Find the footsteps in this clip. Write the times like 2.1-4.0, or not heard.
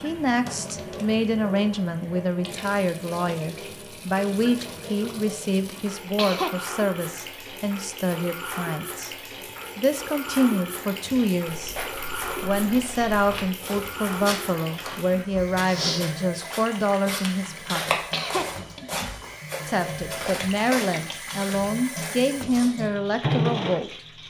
11.0-22.9.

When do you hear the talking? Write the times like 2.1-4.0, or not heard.
0.0-9.2, 9.8-17.9, 19.6-24.2.